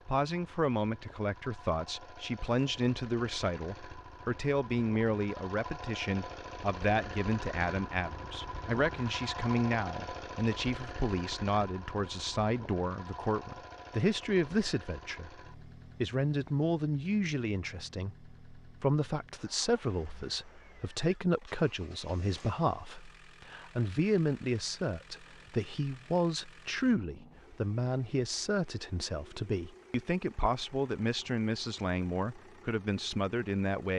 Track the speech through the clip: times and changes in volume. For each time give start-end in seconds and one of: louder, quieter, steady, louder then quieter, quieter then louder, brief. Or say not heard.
0.1-33.9 steady.